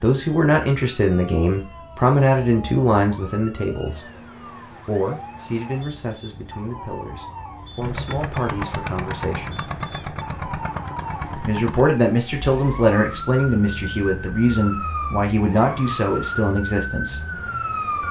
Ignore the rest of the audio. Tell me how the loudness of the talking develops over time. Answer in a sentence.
The loudness of the talking goes down, then up.